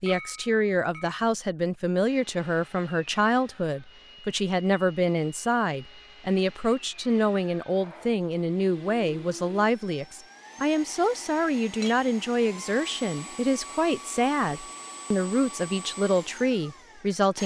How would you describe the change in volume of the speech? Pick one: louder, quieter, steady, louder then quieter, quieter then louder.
steady.